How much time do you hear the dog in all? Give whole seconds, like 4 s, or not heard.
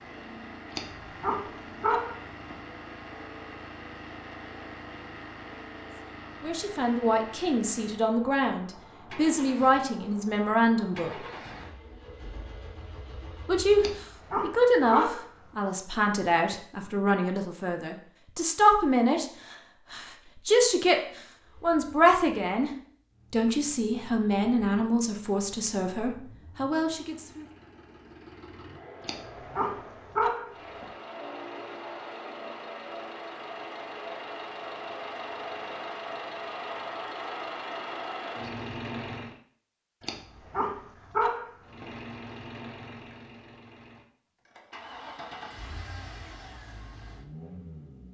7 s.